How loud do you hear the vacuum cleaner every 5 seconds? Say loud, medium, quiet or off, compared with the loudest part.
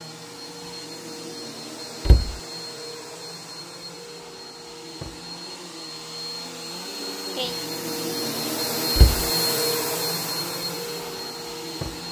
medium, loud, loud.